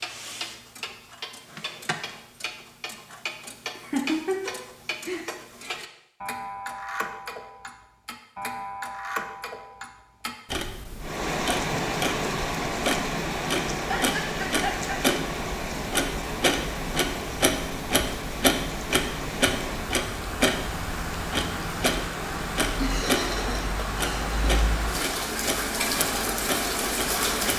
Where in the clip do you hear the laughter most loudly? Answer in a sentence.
The volume of the laughter peaks at 4 seconds.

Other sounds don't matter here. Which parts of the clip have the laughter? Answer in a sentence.
You can hear the laughter from 3.8 to 5.2 s, from 13.8 to 14.9 s and from 22.8 to 24.4 s.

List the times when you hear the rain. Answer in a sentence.
You can hear the rain from 11.0 to 27.5 s.